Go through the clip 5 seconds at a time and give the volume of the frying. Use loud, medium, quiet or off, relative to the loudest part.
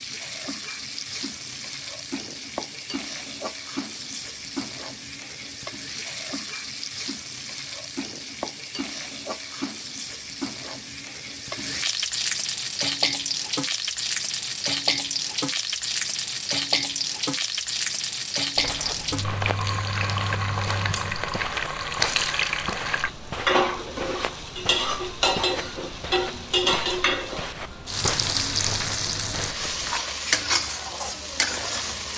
medium, medium, loud, loud, loud, loud, loud.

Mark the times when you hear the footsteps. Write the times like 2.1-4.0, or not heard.
18.6-30.0.